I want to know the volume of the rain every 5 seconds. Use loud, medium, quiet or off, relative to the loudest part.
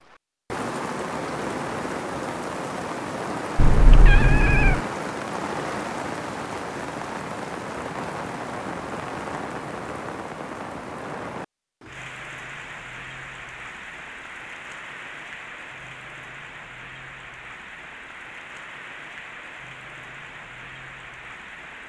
loud, loud, medium, medium, medium.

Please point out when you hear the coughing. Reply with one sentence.
The coughing can't be heard in this clip.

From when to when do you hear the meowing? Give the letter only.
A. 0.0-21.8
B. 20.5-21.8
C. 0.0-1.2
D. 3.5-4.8
D.